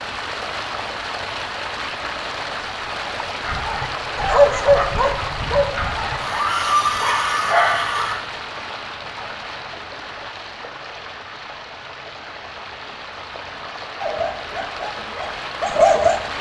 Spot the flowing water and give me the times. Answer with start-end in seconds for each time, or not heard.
0.0-16.3.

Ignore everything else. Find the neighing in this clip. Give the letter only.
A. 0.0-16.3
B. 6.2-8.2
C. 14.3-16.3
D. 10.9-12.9
B.